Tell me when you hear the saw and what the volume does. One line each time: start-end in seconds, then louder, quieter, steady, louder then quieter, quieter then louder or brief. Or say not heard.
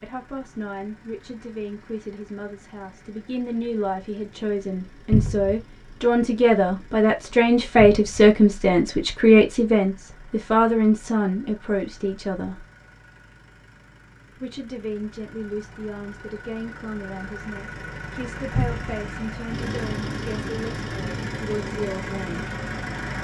not heard.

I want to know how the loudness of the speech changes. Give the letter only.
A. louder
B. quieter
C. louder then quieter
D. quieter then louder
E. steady
C.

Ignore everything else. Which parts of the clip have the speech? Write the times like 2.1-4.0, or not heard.
0.0-12.7, 14.3-22.4.